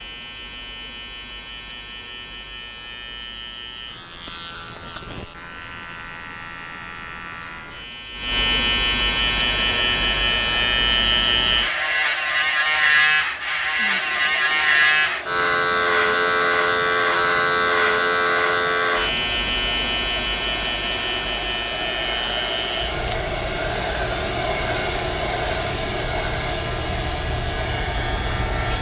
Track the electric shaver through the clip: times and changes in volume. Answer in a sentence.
You can hear the electric shaver from 0.0 to 28.7 s, getting louder then quieter.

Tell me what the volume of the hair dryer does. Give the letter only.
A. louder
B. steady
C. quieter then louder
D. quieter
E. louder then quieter
A.